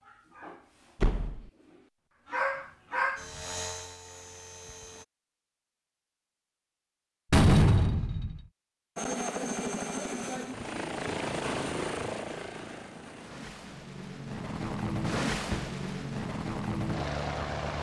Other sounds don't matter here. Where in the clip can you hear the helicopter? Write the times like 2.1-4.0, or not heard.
3.1-5.0, 8.9-17.7.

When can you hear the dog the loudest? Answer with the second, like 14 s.
3 s.